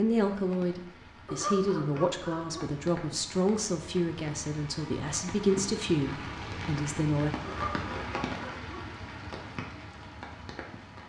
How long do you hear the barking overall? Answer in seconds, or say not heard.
3 s.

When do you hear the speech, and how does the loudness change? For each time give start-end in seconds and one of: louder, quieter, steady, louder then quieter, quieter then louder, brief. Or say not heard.
0.0-7.3 steady.